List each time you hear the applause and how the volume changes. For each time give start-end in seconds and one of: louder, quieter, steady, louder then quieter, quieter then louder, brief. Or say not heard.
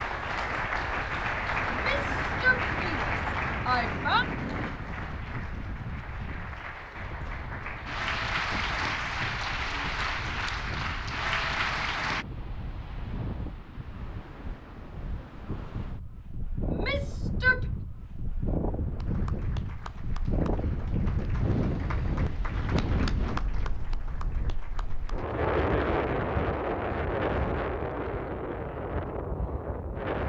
0.0-12.2 quieter then louder
18.9-25.2 louder then quieter.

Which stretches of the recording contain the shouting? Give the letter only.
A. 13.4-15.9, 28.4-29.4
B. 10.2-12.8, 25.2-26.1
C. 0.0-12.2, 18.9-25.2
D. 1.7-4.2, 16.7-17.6
D.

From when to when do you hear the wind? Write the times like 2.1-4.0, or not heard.
0.0-30.2.